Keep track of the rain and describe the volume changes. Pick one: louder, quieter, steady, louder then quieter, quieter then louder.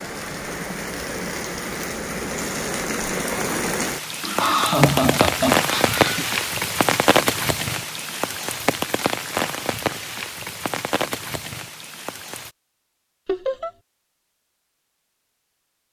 louder then quieter.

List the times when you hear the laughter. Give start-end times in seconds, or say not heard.
4.2-6.2, 13.2-13.7.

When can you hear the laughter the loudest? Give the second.
5 s.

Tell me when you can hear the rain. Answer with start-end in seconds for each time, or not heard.
0.0-12.5.